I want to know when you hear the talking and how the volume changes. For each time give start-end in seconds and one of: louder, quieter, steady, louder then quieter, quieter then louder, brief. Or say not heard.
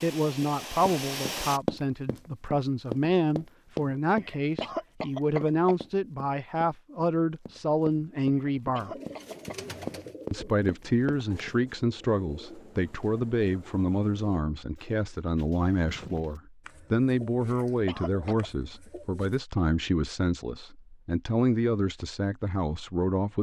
0.0-8.9 steady
10.3-23.3 steady.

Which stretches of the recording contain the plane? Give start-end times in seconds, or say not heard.
0.0-1.6.